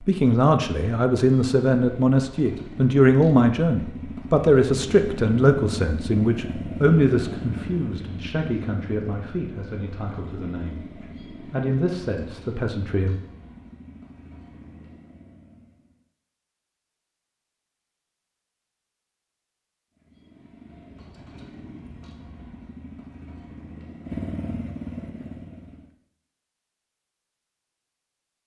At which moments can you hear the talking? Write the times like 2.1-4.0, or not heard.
0.0-13.2.